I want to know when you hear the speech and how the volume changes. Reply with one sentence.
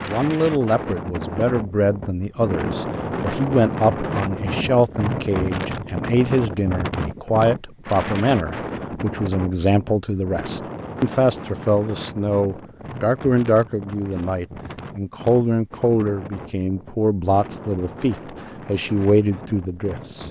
The speech can be heard from 0.0 to 20.2 s, at a steady volume.